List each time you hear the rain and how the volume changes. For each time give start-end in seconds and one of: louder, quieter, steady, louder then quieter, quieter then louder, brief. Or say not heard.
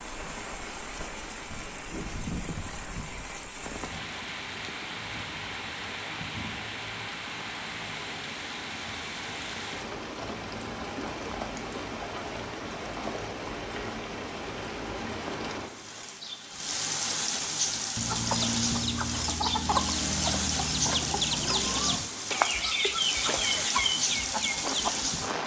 0.0-25.4 louder.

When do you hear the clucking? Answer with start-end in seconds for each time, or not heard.
17.9-25.1.